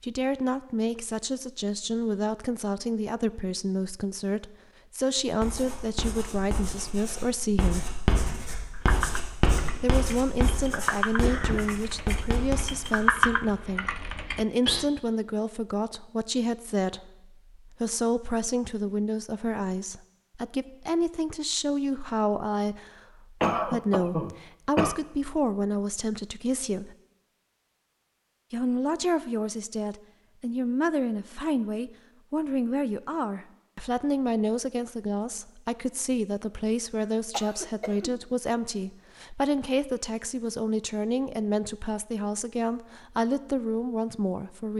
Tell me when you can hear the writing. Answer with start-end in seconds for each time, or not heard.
5.2-13.6.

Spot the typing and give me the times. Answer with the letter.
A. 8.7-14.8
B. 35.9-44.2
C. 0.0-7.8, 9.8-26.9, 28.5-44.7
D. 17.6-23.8
A.